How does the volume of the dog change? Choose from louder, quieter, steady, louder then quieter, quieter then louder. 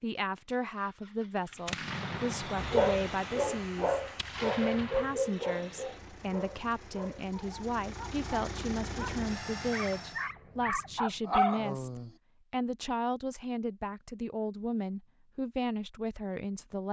quieter then louder.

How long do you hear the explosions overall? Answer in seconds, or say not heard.
4 s.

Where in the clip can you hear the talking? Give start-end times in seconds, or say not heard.
0.0-16.8.